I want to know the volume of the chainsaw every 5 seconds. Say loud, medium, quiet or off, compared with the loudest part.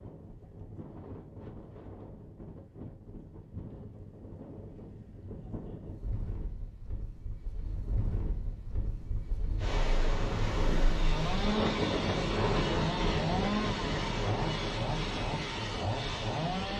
off, off, loud, loud.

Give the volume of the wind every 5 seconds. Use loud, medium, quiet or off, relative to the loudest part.
quiet, medium, loud, medium.